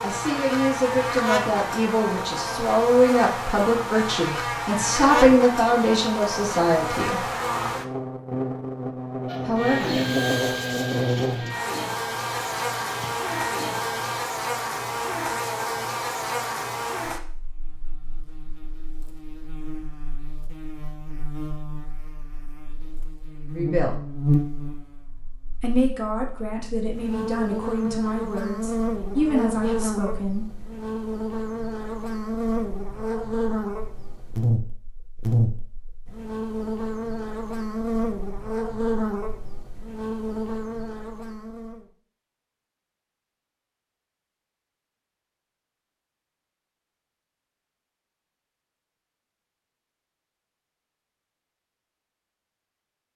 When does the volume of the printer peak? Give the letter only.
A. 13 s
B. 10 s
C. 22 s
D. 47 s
B.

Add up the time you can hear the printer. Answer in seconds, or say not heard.
5 s.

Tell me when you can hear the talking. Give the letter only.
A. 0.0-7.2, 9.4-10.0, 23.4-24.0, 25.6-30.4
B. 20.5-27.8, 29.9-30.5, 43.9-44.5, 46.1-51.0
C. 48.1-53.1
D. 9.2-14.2
A.